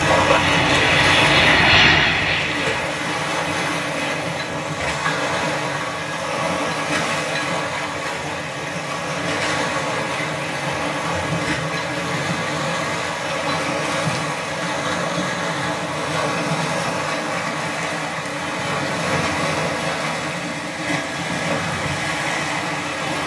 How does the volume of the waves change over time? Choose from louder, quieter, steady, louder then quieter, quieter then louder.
steady.